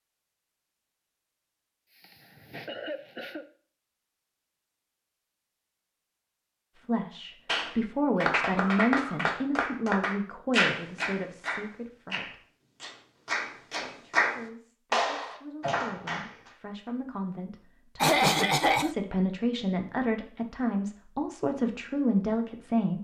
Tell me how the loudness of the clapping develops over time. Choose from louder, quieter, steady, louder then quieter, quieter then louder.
quieter then louder.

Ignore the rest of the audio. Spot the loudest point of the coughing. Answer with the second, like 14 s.
18 s.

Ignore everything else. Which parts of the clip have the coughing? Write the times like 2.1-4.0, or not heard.
1.9-3.5, 8.3-9.2, 17.9-18.9.